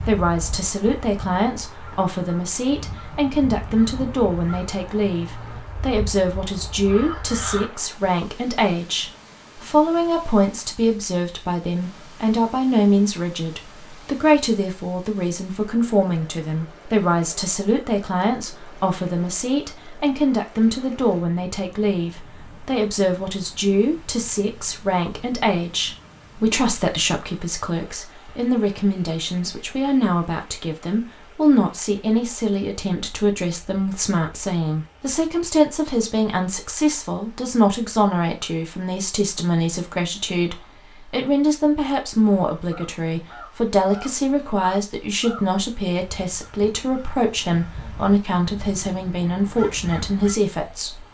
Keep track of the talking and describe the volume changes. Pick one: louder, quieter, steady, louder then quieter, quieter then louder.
steady.